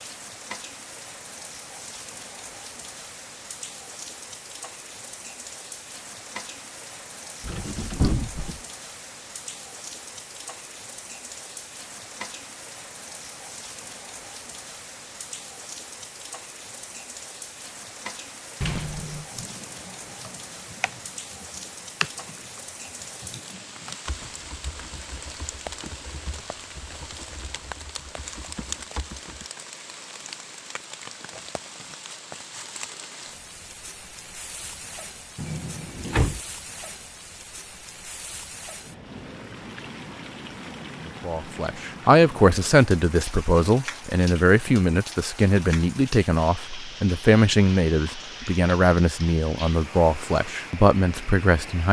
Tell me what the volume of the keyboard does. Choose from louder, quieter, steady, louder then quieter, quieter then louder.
louder then quieter.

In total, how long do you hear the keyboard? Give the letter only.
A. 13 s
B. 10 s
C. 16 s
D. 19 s
B.